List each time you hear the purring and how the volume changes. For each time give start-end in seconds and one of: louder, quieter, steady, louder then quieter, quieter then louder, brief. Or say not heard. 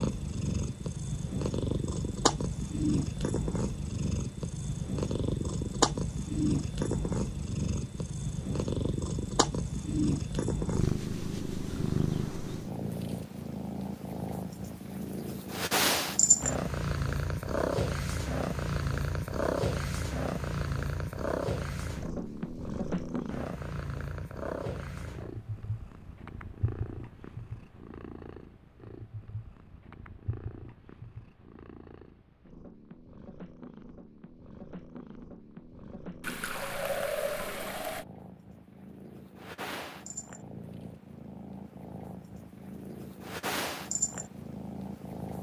0.0-45.3 quieter then louder.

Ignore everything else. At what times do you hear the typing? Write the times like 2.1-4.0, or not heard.
not heard.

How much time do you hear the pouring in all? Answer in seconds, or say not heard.
2 s.